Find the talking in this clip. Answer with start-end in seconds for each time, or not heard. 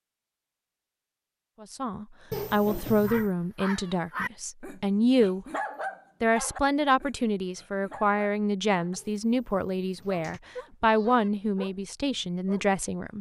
1.6-5.5, 6.2-13.1.